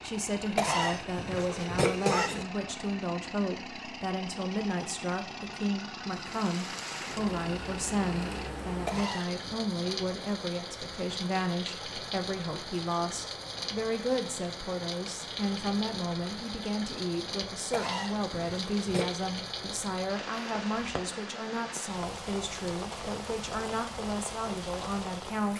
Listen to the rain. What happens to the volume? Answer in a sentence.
The loudness of the rain stays about the same.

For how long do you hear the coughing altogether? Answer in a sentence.
The coughing can be heard for 4 seconds in total.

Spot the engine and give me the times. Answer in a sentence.
You can hear the engine from 0.0 to 8.5 s.